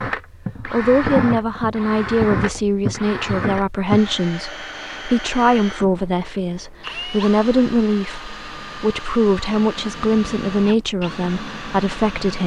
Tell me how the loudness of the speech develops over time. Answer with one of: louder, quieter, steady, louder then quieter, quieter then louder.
steady.